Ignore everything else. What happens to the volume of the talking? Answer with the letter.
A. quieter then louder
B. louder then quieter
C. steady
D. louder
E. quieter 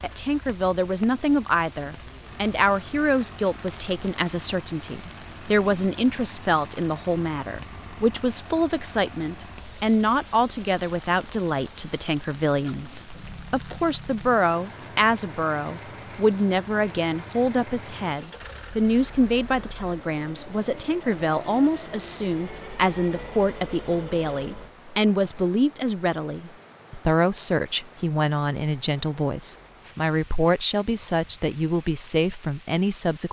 C.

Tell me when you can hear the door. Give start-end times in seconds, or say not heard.
not heard.